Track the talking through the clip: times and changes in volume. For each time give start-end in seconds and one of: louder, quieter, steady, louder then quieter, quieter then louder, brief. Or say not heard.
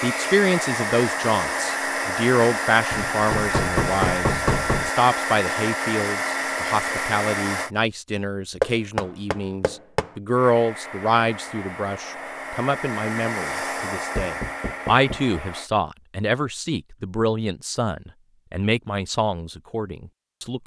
0.0-20.6 steady.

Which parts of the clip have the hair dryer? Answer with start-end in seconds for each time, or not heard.
0.0-7.7, 10.3-15.7.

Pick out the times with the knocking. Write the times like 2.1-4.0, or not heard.
2.9-4.9, 8.6-10.1, 14.2-15.2.